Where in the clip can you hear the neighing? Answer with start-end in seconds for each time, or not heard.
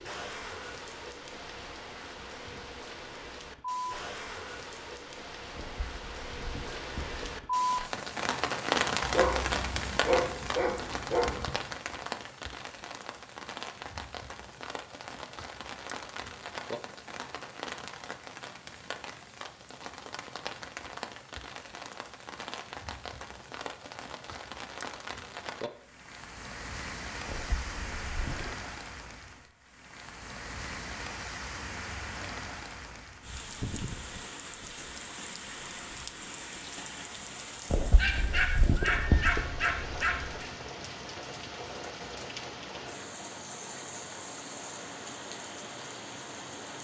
5.5-7.4, 27.2-28.6, 37.7-39.5.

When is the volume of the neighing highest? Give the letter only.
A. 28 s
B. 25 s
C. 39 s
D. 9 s
C.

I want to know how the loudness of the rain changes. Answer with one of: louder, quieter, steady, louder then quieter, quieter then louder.
quieter.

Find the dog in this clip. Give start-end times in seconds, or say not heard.
9.0-11.6, 38.0-40.5.